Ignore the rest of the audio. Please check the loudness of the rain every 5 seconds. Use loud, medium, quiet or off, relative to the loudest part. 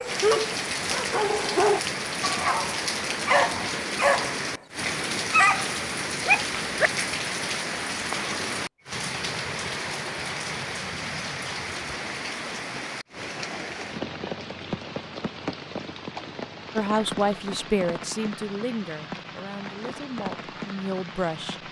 loud, loud, loud, medium, medium.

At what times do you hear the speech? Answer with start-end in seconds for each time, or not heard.
16.8-21.6.